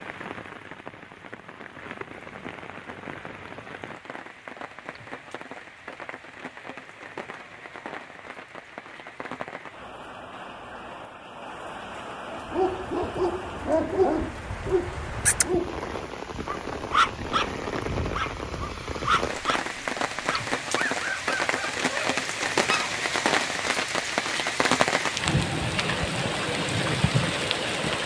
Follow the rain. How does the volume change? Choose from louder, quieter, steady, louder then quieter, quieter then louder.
louder.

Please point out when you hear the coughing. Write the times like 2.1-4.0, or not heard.
not heard.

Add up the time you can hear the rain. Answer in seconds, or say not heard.
28 s.